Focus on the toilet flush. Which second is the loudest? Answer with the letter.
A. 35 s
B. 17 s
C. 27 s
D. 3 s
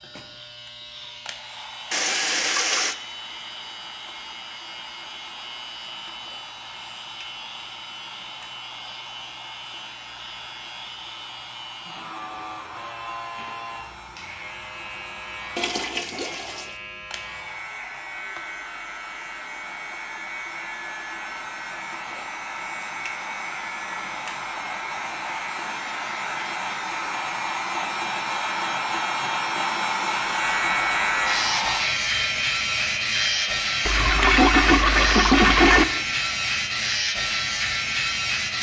A.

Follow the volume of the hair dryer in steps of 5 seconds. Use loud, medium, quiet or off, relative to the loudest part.
quiet, quiet, quiet, quiet, medium, loud, loud, medium.